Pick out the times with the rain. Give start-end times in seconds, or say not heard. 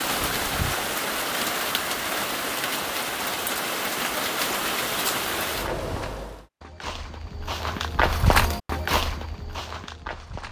0.0-6.5.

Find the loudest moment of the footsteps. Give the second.
8 s.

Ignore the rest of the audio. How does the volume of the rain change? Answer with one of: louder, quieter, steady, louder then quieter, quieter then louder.
steady.